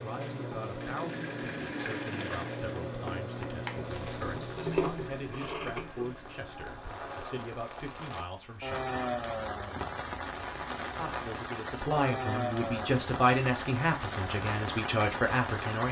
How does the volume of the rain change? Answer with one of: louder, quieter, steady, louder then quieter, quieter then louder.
louder.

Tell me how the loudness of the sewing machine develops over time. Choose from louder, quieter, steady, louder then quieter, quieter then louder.
quieter.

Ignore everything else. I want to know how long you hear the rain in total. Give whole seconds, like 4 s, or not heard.
12 s.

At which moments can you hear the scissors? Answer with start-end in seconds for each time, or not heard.
4.5-6.2.